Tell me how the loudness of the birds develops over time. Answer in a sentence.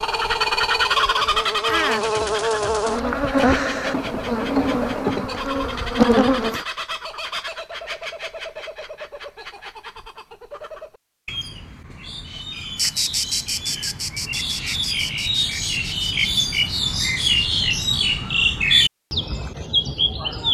The loudness of the birds goes down, then up.